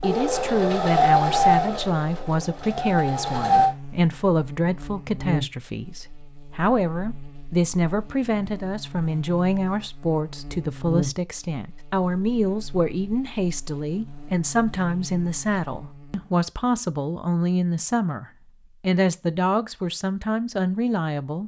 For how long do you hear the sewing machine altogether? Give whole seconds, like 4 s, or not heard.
4 s.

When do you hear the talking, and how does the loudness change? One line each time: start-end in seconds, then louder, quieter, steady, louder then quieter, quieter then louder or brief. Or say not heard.
0.0-21.4 steady.